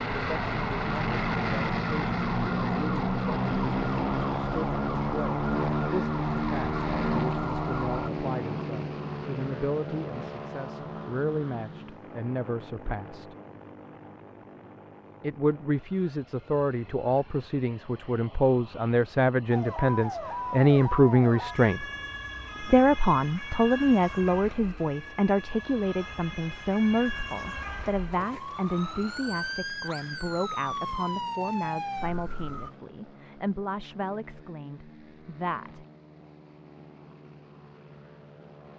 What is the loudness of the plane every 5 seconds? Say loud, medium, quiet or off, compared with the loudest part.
loud, loud, quiet, quiet, quiet, quiet, quiet, quiet.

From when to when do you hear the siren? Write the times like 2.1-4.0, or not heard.
0.0-8.1, 19.5-32.7.